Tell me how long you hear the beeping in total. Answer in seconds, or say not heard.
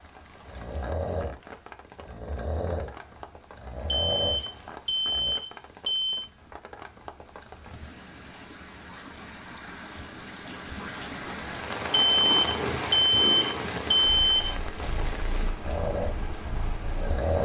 5 s.